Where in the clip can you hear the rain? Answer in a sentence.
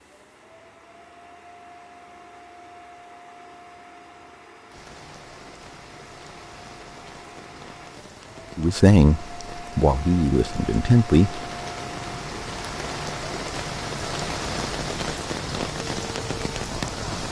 You can hear the rain from 4.7 to 17.2 s.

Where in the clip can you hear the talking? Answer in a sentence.
You can hear the talking from 8.6 to 11.4 s.